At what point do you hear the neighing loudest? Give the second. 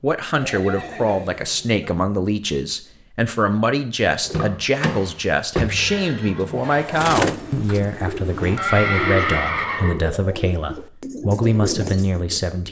9 s.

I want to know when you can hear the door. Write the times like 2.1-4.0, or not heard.
4.2-6.0.